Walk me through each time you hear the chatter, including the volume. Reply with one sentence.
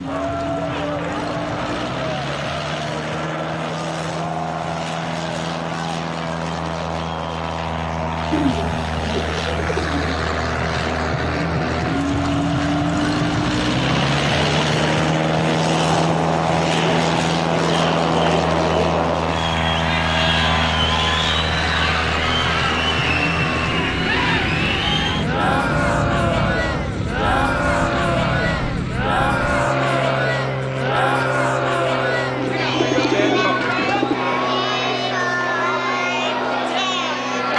You can hear the chatter from 0.0 to 37.5 s, getting louder.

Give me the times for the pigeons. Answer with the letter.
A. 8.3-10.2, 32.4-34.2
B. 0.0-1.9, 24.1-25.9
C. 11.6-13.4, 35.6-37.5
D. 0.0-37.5
A.